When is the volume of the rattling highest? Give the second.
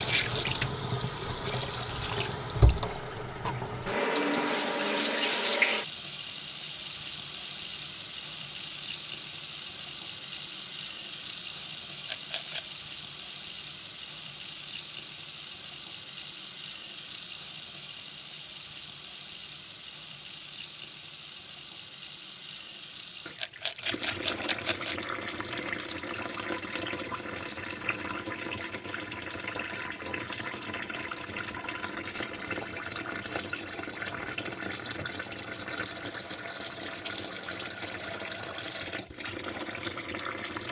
24 s.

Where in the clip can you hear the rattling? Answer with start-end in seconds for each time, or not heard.
12.1-12.8, 23.4-24.9.